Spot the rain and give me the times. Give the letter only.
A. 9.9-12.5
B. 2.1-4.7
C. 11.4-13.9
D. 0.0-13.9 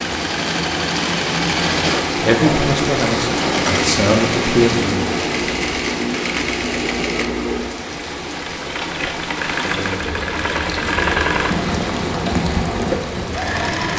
D.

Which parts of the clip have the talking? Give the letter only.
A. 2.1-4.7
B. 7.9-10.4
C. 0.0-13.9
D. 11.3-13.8
A.